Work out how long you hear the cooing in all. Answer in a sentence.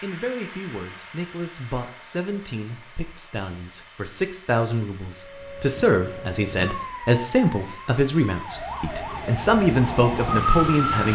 The cooing can't be heard in this clip.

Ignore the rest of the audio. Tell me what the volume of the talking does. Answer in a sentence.
The volume of the talking goes up.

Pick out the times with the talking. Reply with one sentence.
The talking can be heard from 0.0 to 11.1 s.